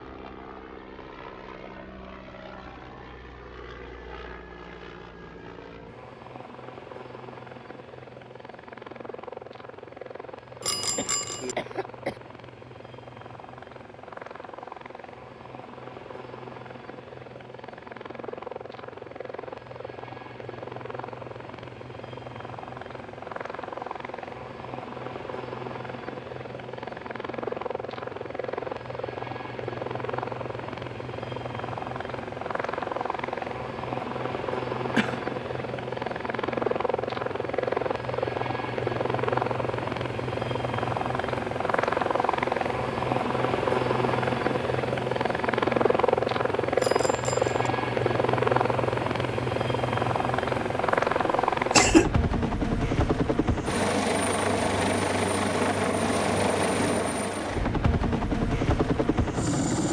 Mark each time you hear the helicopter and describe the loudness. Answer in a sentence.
The helicopter can be heard from 0.0 to 59.8 s, getting louder.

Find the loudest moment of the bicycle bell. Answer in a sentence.
The loudest moment of the bicycle bell is at 11 seconds.